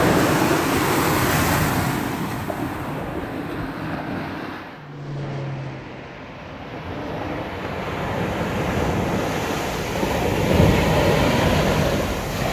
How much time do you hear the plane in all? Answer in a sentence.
You can hear the plane for 3 seconds altogether.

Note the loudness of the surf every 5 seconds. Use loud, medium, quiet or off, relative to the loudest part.
loud, medium, loud.